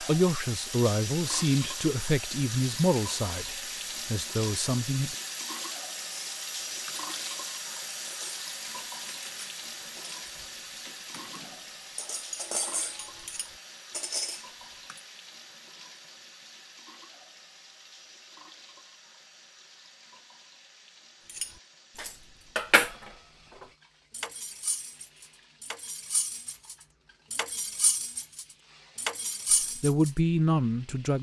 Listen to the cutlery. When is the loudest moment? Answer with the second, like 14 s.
23 s.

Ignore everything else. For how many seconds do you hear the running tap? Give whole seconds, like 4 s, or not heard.
31 s.